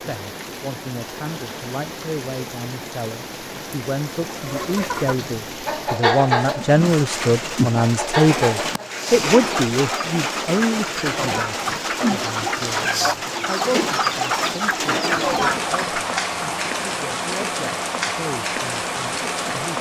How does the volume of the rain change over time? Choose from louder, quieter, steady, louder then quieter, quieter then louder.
louder.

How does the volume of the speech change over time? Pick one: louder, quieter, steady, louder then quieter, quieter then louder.
louder then quieter.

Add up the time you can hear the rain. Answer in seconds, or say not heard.
20 s.